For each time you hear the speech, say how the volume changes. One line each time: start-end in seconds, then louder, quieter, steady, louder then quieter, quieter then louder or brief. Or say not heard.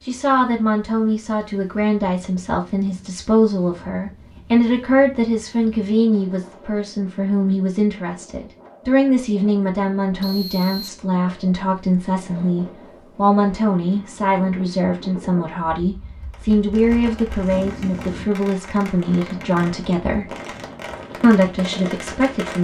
0.1-20.4 steady
21.2-22.6 brief.